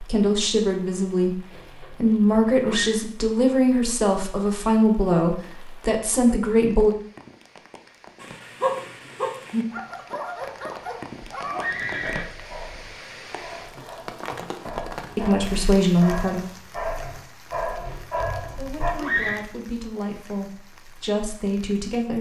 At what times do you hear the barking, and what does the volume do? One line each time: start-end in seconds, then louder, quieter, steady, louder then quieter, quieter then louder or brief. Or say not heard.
8.2-18.9 quieter then louder.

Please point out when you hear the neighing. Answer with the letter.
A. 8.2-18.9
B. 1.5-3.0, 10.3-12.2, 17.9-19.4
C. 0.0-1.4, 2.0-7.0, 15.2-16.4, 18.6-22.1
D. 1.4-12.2
B.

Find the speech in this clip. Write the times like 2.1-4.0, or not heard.
0.0-1.4, 2.0-7.0, 15.2-16.4, 18.6-22.1.